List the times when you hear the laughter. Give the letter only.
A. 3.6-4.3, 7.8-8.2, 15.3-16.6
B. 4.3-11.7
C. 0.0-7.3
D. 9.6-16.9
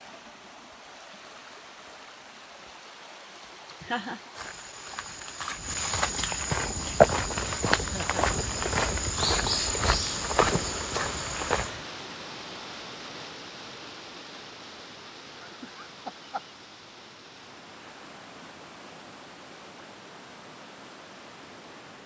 A.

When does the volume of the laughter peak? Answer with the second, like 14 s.
4 s.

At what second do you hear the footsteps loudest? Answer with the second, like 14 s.
7 s.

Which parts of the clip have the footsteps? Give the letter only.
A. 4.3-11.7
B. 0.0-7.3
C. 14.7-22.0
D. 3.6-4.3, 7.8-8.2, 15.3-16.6
A.